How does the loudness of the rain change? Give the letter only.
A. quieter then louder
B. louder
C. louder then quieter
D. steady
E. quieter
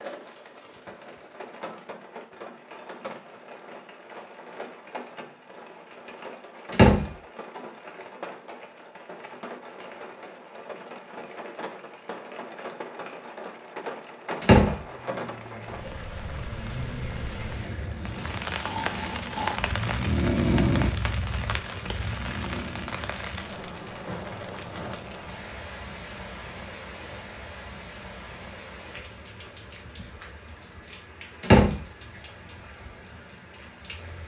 C.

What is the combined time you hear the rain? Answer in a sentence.
You can hear the rain for 34 seconds altogether.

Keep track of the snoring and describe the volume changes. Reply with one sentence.
The loudness of the snoring goes up, then down.